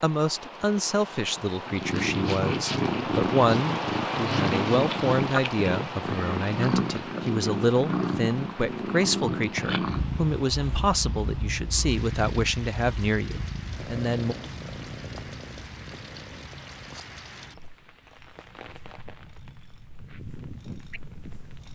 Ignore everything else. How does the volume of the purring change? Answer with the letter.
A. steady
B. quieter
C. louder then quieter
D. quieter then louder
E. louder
B.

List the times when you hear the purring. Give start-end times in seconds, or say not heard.
1.6-21.7.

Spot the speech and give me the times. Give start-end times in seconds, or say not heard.
0.0-14.3.